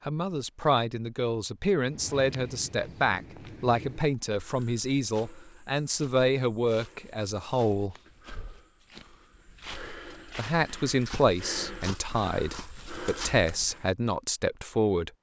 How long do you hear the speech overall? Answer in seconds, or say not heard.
13 s.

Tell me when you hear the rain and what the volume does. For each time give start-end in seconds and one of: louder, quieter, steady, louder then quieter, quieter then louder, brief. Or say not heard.
not heard.